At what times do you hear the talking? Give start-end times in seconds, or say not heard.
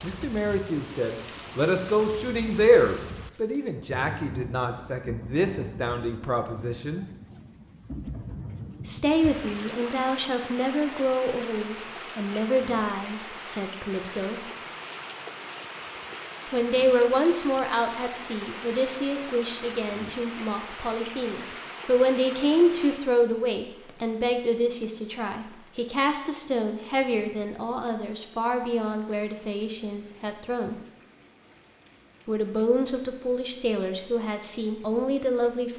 0.0-7.0, 8.8-14.5, 16.5-30.8, 32.2-35.7.